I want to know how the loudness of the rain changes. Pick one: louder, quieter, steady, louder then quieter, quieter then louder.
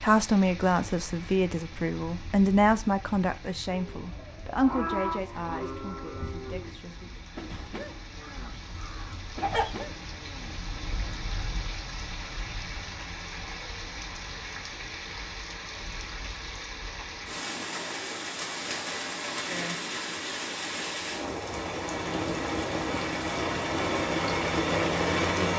louder.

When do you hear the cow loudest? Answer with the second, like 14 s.
5 s.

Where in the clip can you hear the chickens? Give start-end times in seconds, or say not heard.
8.2-9.8.